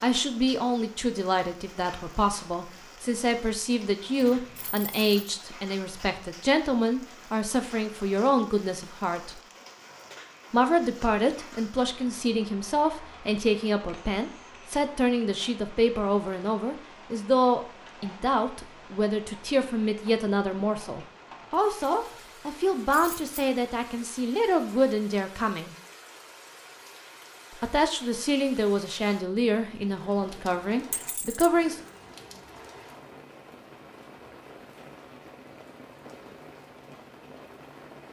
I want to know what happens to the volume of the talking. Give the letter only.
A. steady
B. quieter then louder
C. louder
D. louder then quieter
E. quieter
A.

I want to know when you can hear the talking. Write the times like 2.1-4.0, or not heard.
0.0-9.4, 10.5-25.8, 27.6-31.8.